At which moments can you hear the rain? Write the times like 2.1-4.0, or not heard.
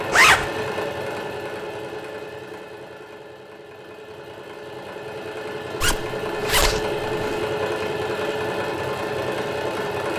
not heard.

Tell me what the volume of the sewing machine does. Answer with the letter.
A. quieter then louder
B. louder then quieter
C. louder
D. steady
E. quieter
A.